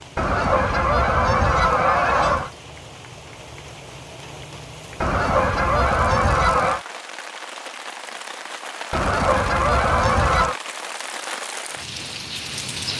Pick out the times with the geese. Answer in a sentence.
You can hear the geese from 0.1 to 2.5 s, from 5.0 to 6.8 s and from 8.9 to 10.6 s.